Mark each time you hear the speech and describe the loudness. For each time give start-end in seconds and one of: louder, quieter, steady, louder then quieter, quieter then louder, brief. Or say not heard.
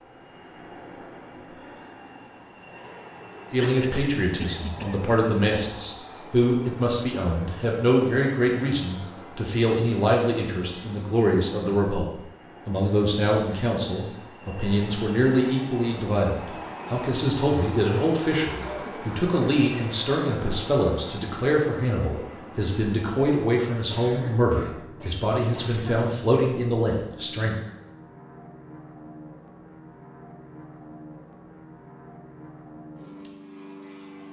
3.5-27.6 steady.